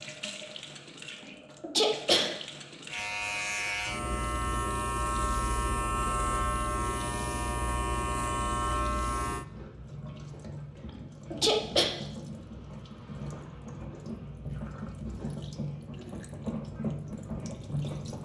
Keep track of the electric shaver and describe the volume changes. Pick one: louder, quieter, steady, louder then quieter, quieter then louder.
steady.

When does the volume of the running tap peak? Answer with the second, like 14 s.
17 s.